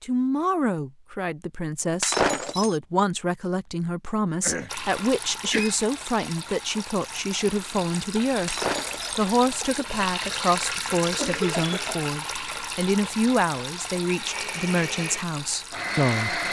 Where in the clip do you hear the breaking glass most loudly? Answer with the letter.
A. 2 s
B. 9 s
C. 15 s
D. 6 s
A.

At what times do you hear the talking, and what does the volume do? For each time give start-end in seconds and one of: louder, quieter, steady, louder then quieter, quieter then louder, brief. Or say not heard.
0.0-16.4 steady.